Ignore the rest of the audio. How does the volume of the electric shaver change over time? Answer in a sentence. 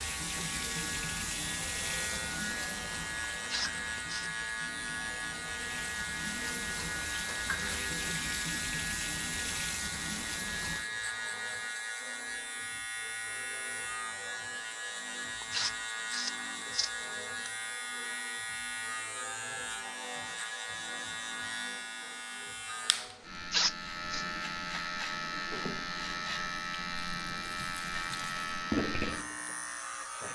The loudness of the electric shaver stays about the same.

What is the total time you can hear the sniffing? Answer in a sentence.
The sniffing can be heard for 3 seconds in total.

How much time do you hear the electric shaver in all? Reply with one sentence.
The electric shaver can be heard for 30 seconds in total.